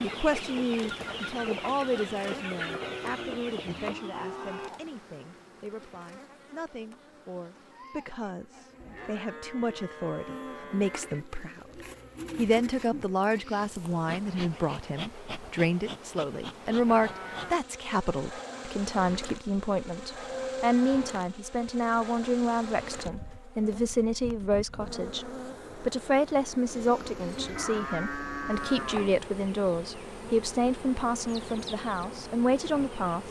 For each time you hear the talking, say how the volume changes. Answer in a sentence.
The talking can be heard from 0.0 to 11.7 s, getting quieter then louder; and from 12.3 to 33.2 s, at a steady volume.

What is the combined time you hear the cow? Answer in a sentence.
The cow can be heard for 8 seconds in total.